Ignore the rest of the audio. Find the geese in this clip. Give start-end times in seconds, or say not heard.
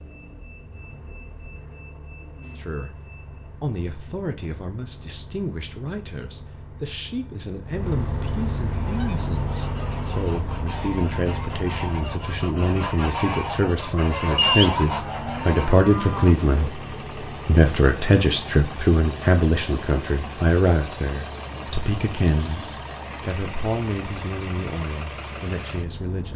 8.7-15.9.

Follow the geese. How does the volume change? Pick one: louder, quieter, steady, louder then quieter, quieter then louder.
louder.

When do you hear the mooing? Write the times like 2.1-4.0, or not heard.
14.3-16.7.